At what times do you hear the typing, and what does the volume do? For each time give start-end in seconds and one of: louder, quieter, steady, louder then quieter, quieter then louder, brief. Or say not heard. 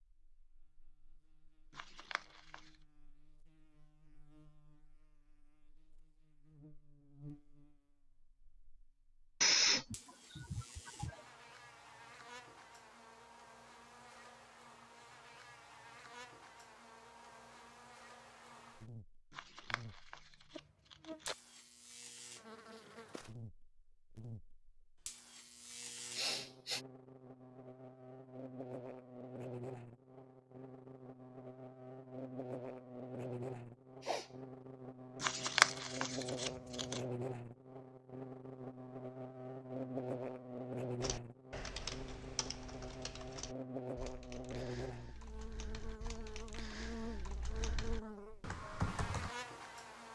41.0-49.4 quieter then louder.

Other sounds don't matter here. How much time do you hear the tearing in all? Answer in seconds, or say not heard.
5 s.